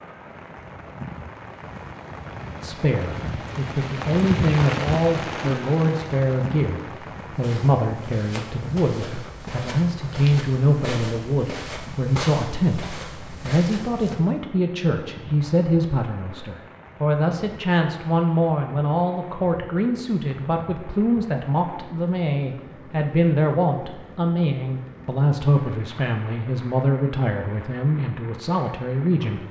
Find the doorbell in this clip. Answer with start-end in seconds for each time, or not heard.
not heard.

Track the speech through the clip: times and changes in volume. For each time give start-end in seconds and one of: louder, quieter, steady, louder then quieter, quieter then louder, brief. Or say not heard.
2.6-29.4 steady.